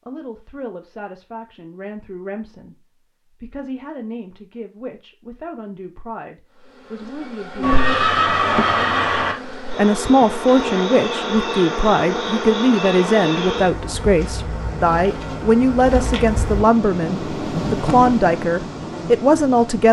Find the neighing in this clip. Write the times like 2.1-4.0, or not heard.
7.6-9.3.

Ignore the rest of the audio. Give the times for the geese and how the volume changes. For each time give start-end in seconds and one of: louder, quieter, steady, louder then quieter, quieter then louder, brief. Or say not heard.
not heard.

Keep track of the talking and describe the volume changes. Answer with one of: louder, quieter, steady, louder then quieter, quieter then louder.
louder.